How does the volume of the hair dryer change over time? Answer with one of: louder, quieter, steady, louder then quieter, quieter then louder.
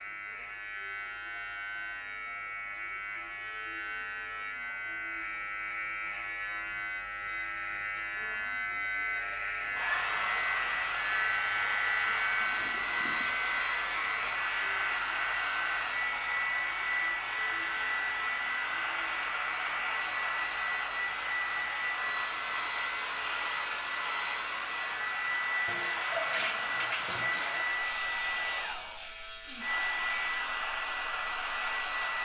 steady.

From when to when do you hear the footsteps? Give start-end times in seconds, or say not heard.
not heard.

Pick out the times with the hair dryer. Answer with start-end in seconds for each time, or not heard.
9.7-32.2.